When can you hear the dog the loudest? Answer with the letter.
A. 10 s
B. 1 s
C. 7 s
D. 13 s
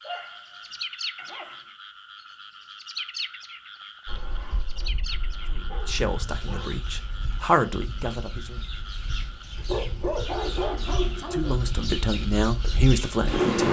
A.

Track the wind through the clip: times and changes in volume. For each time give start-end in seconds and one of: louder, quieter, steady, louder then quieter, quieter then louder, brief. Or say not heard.
4.0-13.6 louder.